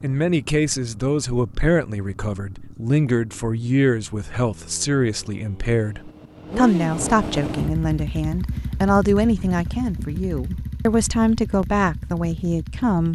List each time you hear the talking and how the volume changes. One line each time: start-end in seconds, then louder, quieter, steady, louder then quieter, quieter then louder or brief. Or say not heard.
0.0-13.1 steady.